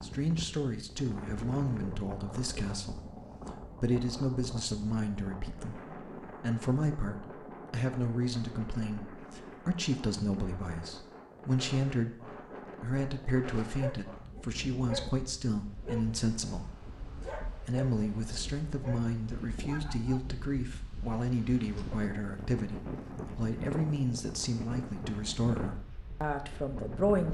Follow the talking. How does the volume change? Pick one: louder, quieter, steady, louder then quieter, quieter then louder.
steady.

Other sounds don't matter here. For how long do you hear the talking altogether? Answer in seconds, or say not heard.
26 s.